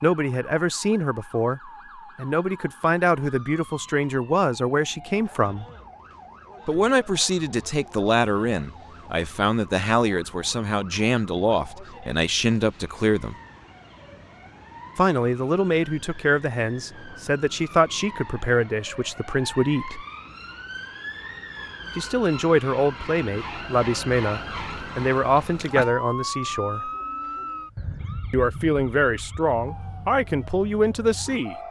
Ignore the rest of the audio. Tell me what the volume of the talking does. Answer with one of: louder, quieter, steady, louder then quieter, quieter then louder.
steady.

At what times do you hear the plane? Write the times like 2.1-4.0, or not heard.
not heard.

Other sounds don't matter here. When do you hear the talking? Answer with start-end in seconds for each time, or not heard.
0.0-5.7, 6.7-13.3, 14.9-20.1, 21.9-26.9, 28.3-31.6.